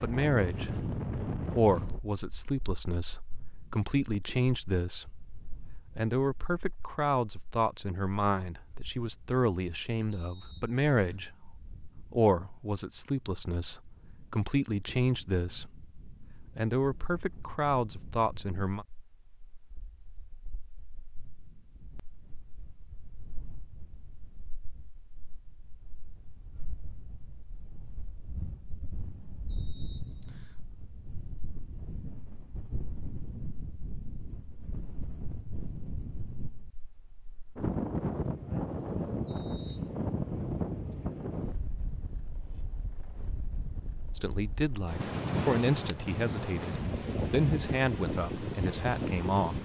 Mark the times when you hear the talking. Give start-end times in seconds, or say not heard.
0.0-18.9, 44.1-49.5.